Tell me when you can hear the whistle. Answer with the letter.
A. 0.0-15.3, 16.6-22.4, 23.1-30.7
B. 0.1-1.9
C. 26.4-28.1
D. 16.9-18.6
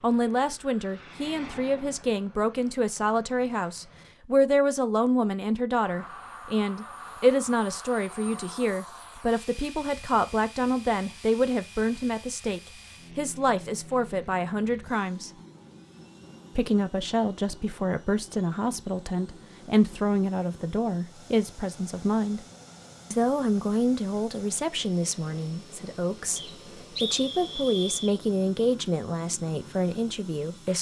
C.